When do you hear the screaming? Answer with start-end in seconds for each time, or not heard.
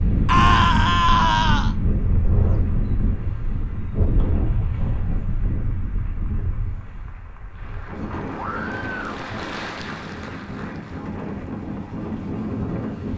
0.2-1.8, 8.3-9.0.